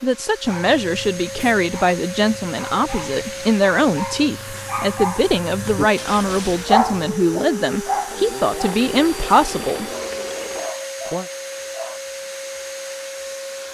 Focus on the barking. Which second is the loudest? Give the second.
7 s.